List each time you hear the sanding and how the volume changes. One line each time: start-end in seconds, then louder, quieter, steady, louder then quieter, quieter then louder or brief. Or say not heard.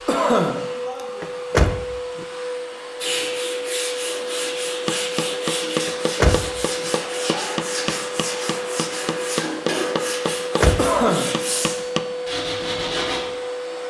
3.0-13.2 steady.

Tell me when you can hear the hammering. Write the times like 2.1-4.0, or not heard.
4.8-12.1.